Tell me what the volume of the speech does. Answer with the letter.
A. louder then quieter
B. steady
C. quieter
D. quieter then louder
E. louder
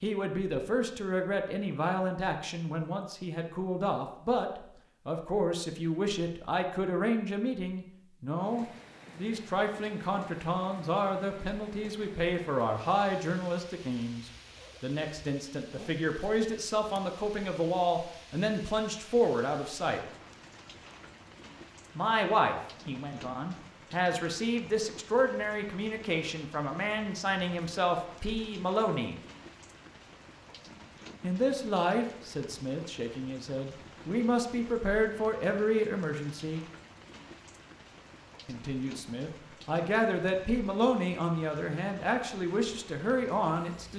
B.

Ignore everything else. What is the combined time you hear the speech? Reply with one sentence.
You can hear the speech for 38 seconds altogether.